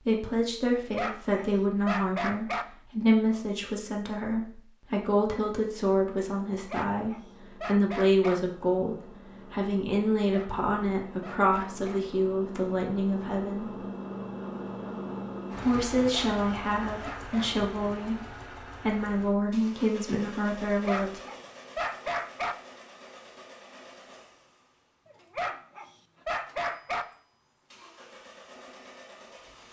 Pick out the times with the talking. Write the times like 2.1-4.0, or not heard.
0.0-13.8, 15.6-21.2.